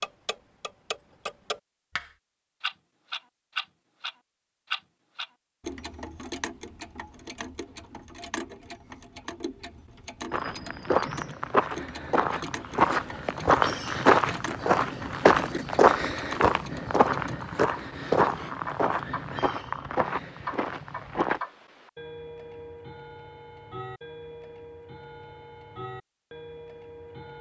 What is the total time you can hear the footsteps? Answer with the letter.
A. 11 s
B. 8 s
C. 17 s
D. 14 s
A.